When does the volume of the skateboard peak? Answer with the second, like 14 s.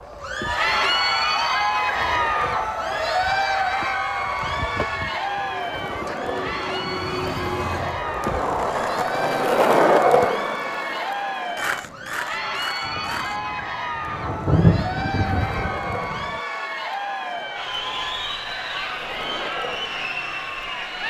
10 s.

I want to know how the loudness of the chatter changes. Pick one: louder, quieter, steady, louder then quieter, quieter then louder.
quieter.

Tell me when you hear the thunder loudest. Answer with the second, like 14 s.
15 s.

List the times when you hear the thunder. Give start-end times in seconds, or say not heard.
12.8-16.4.